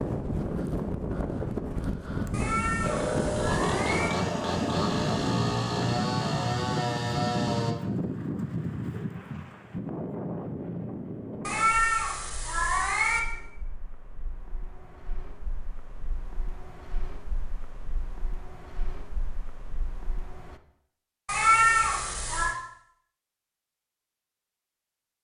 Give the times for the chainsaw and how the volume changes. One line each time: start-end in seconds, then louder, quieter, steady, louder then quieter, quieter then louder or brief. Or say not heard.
2.8-7.8 steady.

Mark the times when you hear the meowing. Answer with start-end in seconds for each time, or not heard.
2.3-4.1, 11.4-13.2, 21.2-22.6.